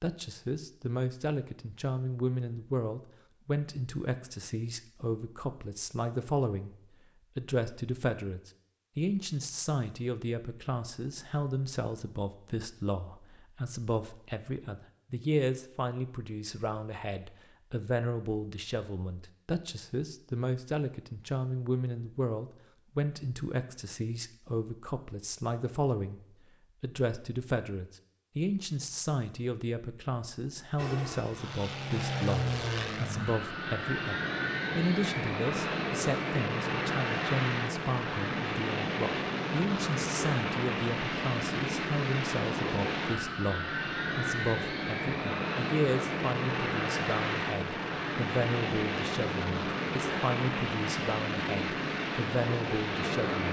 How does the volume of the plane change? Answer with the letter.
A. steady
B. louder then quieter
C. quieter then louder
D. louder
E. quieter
A.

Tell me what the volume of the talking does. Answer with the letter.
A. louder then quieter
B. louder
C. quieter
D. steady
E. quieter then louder
D.